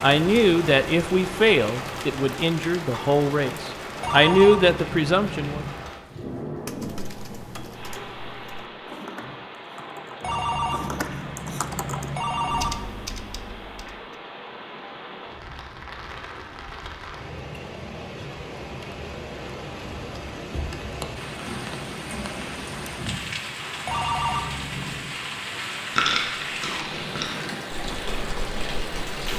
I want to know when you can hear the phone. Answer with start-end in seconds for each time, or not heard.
4.0-5.8, 10.2-12.8, 23.9-25.1.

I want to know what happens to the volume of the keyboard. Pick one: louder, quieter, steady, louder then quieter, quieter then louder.
louder.